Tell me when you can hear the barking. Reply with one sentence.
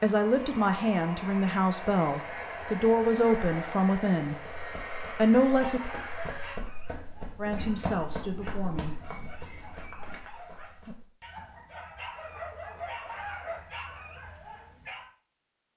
You can hear the barking from 5.5 to 15.1 s.